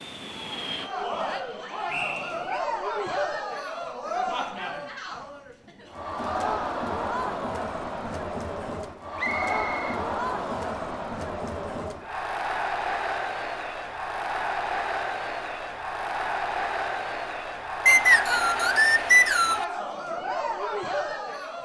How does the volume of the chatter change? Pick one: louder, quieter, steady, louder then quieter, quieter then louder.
steady.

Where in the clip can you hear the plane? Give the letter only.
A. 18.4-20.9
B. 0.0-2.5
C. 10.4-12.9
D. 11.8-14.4
B.